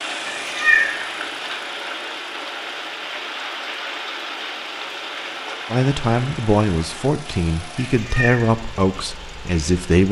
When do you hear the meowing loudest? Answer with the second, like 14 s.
1 s.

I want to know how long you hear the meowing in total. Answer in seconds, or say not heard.
2 s.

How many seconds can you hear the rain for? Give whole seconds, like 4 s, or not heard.
10 s.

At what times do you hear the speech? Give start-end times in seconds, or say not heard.
5.7-10.0.